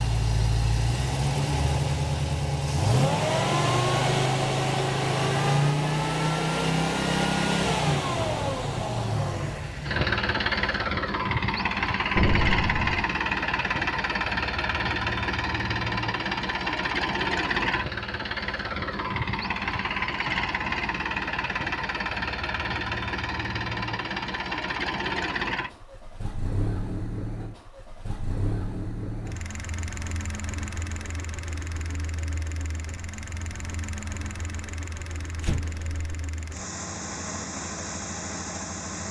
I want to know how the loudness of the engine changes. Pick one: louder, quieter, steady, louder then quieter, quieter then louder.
quieter.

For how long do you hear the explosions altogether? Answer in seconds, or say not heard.
2 s.